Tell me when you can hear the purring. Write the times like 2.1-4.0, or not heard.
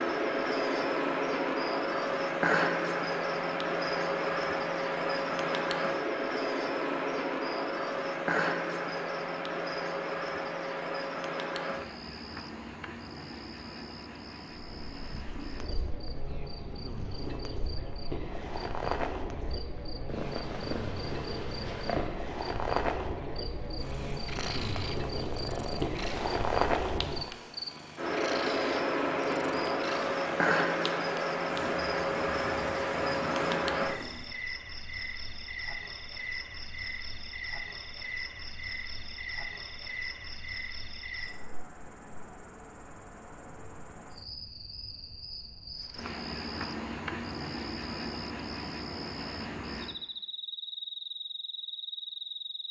14.6-34.3.